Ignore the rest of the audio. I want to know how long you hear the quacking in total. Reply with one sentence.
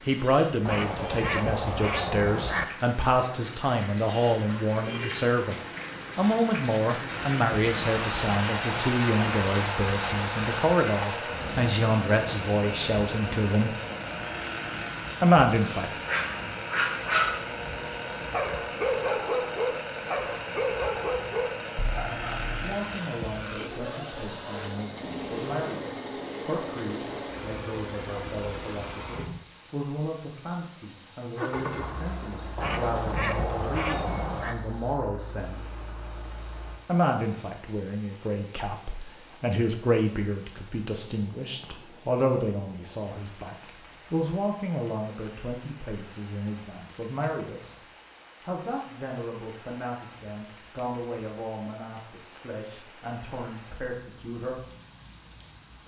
The quacking can be heard for 4 seconds in total.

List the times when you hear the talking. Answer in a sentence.
You can hear the talking from 0.1 to 13.8 s, from 15.2 to 15.9 s, from 22.6 to 35.7 s, from 36.9 to 47.8 s and from 48.4 to 54.6 s.